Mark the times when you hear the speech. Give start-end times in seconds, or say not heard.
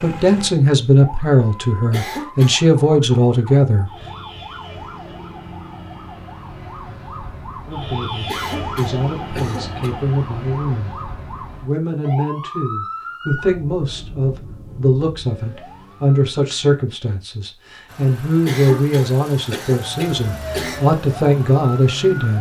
0.0-3.9, 7.7-10.9, 11.6-22.3.